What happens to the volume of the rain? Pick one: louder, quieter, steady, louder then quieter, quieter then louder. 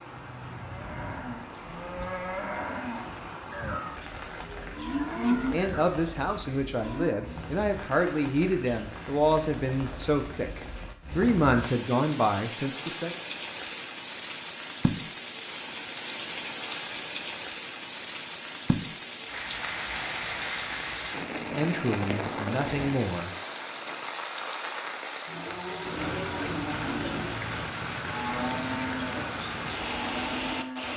louder.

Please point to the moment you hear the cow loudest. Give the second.
5 s.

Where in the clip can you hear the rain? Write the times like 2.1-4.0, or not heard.
0.0-30.9.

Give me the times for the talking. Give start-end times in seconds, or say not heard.
5.2-13.2, 21.4-23.3.